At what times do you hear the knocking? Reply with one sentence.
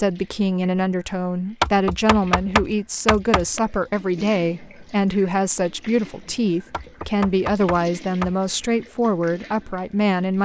You can hear the knocking from 1.6 to 3.6 s and from 6.7 to 8.3 s.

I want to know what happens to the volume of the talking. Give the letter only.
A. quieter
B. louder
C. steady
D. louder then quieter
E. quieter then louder
C.